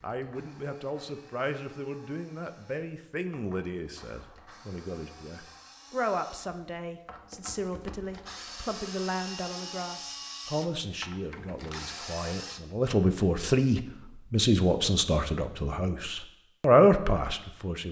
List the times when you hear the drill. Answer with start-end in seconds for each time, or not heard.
0.0-12.6.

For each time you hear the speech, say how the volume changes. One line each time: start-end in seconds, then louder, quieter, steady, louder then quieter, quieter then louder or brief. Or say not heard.
0.0-17.8 louder.